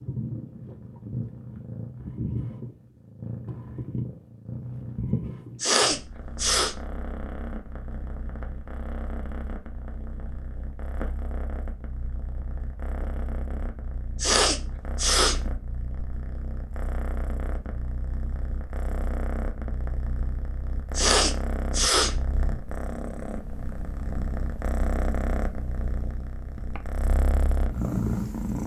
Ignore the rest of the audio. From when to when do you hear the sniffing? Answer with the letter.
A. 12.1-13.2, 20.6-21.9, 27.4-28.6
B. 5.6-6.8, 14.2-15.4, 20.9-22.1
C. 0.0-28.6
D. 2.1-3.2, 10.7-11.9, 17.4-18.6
B.